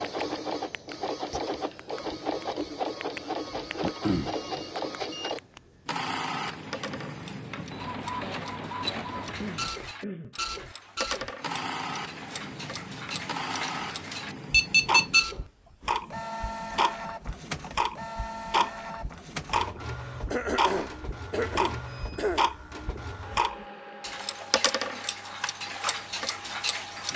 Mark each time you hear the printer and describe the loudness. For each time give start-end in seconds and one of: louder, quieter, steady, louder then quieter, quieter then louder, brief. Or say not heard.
0.0-27.1 quieter.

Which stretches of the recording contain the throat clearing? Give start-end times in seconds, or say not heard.
3.8-4.3, 9.2-10.3, 20.3-22.5.